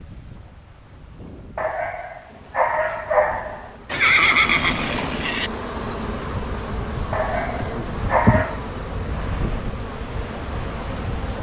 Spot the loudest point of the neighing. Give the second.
4 s.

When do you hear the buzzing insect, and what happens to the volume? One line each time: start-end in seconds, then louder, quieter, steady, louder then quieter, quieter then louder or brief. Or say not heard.
2.2-11.3 louder then quieter.